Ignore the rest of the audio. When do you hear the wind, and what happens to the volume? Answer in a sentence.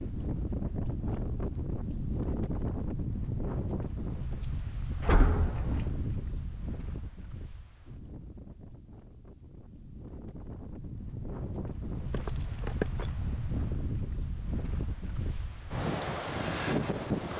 You can hear the wind from 0.0 to 17.3 s, getting quieter then louder.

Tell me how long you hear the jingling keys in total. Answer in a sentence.
The jingling keys can be heard for 2 seconds in total.